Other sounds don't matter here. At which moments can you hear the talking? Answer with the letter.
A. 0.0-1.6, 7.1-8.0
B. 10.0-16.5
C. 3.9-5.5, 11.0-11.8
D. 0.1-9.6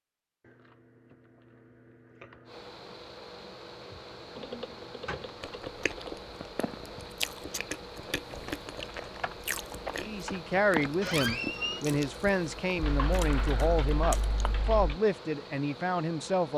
B.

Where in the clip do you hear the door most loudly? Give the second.
11 s.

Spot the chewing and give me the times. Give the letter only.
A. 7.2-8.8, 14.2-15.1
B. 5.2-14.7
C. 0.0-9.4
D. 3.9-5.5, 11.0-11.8
B.